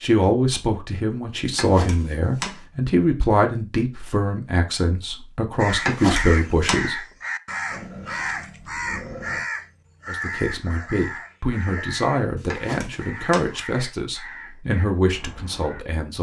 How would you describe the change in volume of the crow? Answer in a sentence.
The loudness of the crow goes down.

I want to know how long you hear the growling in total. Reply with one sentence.
The growling can be heard for 2 seconds in total.